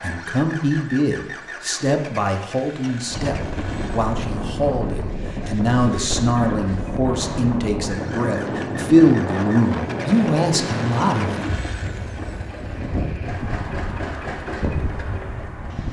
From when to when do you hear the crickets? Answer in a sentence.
The crickets can't be heard in this clip.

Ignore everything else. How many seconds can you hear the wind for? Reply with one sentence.
The wind can be heard for 13 seconds in total.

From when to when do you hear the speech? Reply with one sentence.
The speech can be heard from 0.0 to 11.4 s.